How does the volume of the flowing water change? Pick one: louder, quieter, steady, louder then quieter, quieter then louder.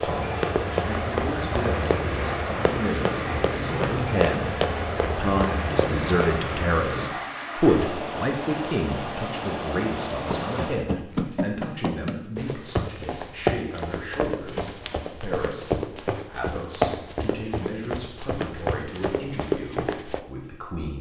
steady.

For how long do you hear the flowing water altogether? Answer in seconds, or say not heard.
11 s.